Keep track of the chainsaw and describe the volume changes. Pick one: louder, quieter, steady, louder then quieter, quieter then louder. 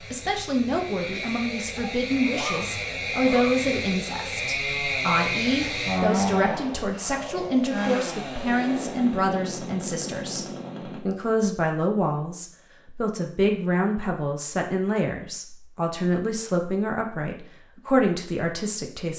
louder then quieter.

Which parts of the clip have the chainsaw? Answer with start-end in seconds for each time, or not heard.
0.0-11.0.